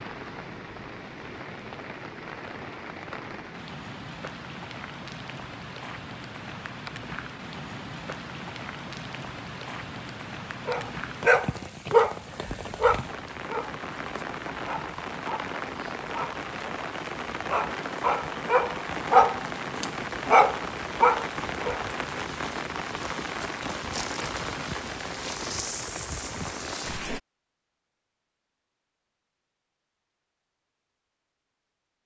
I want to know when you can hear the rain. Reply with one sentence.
The rain can be heard from 0.0 to 27.2 s.